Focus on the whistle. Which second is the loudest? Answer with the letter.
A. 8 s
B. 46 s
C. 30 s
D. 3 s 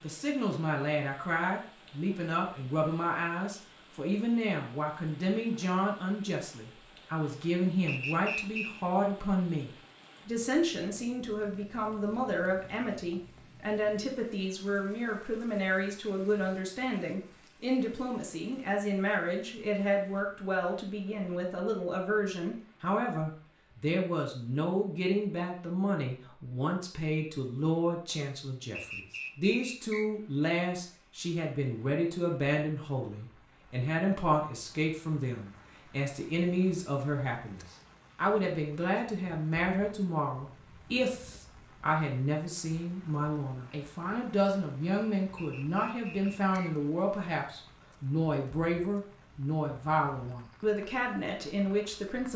A.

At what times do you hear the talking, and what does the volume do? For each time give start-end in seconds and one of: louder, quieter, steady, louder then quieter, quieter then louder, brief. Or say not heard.
0.0-52.3 steady.